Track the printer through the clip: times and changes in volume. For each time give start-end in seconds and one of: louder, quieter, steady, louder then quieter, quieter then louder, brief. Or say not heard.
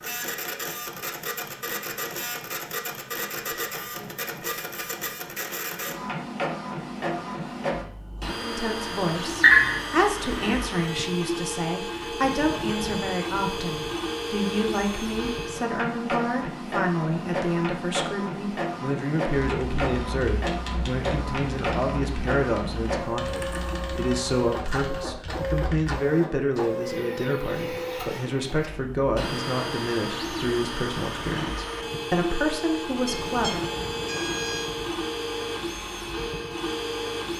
0.0-37.3 steady.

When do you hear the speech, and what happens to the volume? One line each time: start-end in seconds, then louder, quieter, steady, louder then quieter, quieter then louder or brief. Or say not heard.
8.4-33.6 steady.